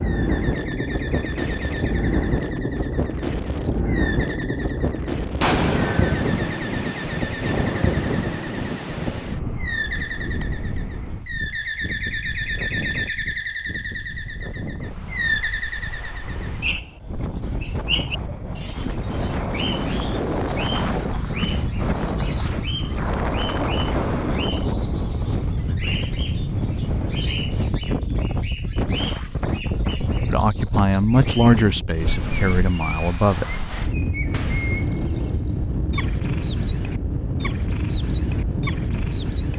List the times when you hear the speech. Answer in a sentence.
The speech can be heard from 30.3 to 33.5 s.